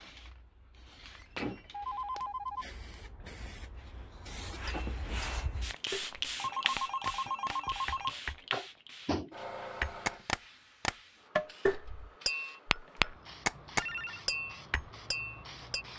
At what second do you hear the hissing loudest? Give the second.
6 s.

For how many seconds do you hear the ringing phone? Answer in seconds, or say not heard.
5 s.